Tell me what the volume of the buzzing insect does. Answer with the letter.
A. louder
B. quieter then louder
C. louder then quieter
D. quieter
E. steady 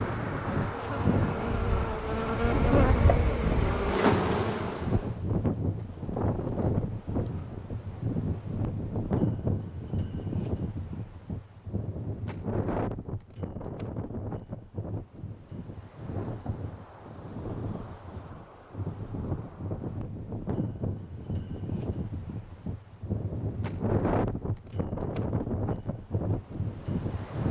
A.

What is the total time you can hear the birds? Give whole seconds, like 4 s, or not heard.
not heard.